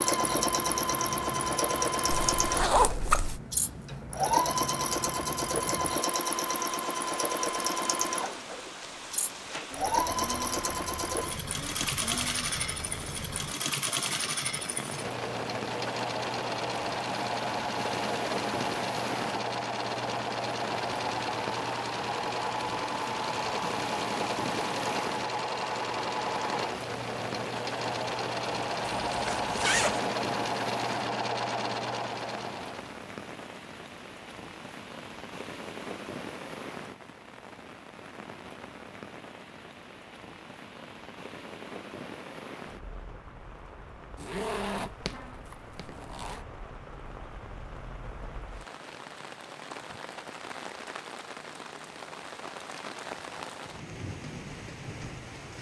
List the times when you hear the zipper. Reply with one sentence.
The zipper can be heard from 2.1 to 3.4 s, from 29.1 to 30.0 s, from 44.2 to 45.1 s and from 45.8 to 46.4 s.